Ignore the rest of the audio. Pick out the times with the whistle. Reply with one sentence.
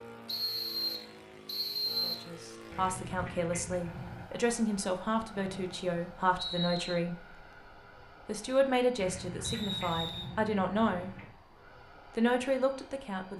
You can hear the whistle from 0.2 to 2.3 s, from 5.3 to 7.0 s and from 9.4 to 10.3 s.